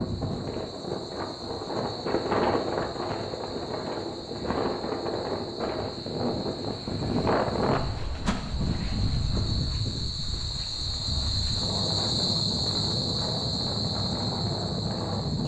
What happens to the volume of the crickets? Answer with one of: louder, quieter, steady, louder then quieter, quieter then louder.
louder.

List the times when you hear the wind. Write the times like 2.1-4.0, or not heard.
0.0-15.4.